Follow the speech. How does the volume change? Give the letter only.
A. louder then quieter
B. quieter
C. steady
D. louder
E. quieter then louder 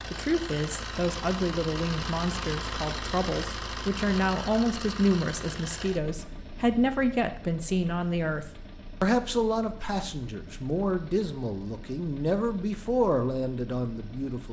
C.